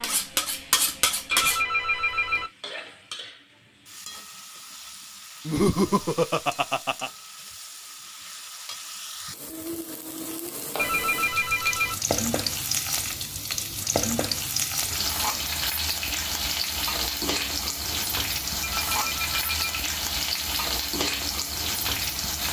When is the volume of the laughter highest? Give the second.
6 s.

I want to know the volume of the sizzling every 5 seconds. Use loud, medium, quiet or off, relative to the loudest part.
quiet, quiet, loud, loud, loud.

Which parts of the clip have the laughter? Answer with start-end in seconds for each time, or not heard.
5.5-7.1.